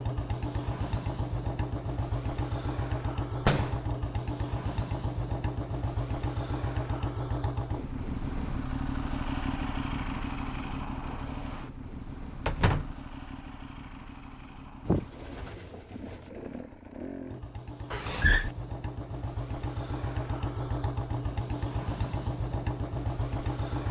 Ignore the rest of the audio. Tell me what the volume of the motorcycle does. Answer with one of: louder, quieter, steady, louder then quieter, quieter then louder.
quieter then louder.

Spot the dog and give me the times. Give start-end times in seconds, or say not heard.
not heard.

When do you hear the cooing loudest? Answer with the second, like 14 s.
15 s.